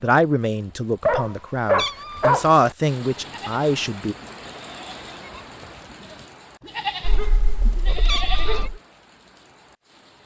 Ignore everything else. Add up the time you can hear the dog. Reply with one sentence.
The dog can be heard for 3 seconds in total.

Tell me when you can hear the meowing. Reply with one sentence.
You can hear the meowing from 1.8 to 2.4 s and from 8.1 to 8.6 s.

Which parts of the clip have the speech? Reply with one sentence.
You can hear the speech from 0.0 to 4.2 s.